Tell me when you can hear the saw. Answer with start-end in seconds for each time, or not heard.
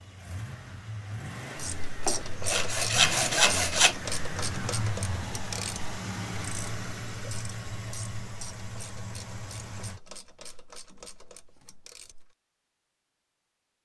2.0-4.0.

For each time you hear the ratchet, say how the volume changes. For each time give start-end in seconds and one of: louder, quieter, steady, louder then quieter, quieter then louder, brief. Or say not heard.
1.6-12.3 quieter.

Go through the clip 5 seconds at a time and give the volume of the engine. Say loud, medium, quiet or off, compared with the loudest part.
loud, loud, off.